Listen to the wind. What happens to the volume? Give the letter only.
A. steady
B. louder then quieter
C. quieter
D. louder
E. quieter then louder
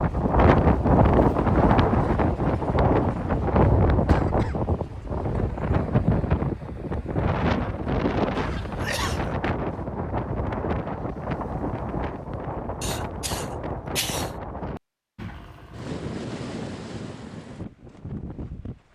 C.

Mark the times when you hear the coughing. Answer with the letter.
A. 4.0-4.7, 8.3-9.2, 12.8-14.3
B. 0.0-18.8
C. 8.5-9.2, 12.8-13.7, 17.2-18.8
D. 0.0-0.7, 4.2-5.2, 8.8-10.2
A.